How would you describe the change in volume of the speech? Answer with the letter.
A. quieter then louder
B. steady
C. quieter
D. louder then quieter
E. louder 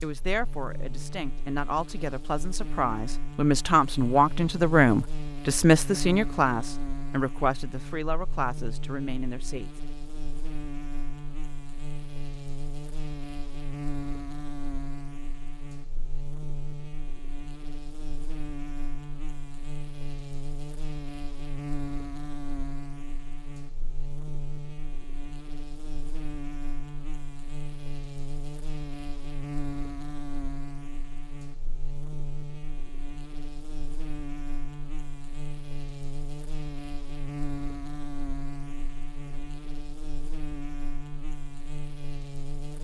D.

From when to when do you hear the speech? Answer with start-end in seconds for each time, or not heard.
0.0-9.7.